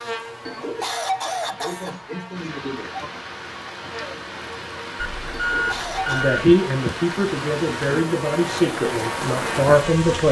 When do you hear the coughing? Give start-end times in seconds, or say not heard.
0.5-3.1, 5.3-6.2.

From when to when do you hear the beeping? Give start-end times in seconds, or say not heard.
5.0-6.3.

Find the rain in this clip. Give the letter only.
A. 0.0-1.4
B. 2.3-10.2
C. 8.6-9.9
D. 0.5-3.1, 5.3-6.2
B.